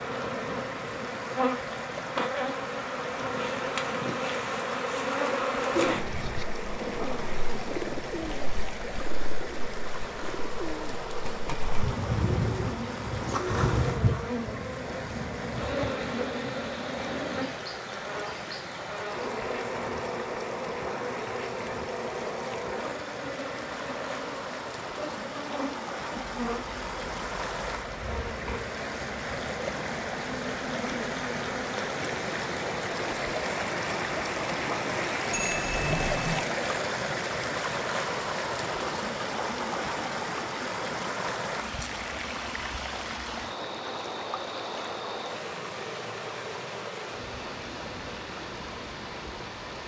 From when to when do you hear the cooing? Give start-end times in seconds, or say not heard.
5.7-14.2.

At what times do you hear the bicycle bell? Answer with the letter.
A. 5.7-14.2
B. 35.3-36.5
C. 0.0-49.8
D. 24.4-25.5
B.